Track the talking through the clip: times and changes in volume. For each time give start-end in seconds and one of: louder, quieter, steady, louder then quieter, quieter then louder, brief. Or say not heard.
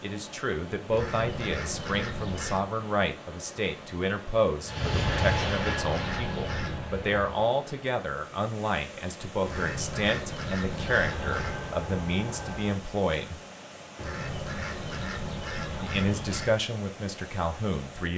0.0-13.4 steady
15.8-18.1 brief.